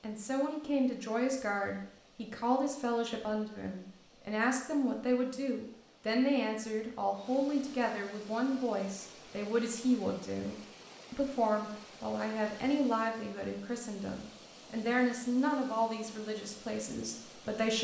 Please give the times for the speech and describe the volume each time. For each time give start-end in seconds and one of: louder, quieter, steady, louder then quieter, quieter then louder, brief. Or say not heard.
0.0-17.7 steady.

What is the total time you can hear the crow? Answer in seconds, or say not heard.
not heard.